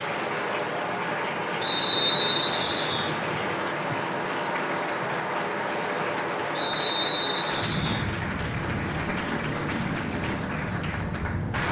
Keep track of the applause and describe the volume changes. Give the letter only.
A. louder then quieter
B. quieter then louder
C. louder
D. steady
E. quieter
D.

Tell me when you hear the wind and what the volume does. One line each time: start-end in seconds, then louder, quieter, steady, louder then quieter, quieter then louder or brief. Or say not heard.
0.0-11.6 steady.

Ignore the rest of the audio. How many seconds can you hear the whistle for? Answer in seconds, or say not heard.
3 s.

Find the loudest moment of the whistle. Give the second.
2 s.